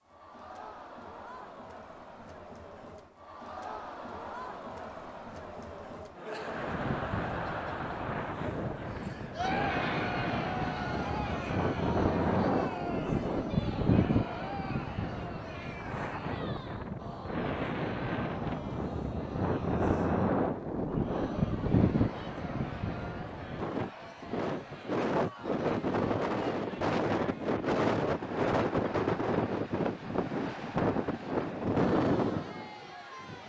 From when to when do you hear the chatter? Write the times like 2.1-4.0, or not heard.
0.0-33.4.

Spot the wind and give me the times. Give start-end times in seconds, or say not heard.
6.5-33.4.